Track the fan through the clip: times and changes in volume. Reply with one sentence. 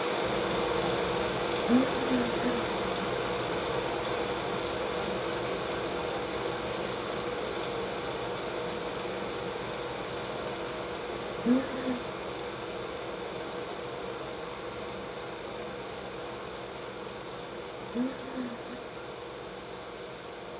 You can hear the fan from 0.0 to 20.5 s, getting quieter.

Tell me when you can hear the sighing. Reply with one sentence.
The sighing can be heard from 1.6 to 3.0 s, from 11.4 to 12.0 s and from 17.9 to 18.8 s.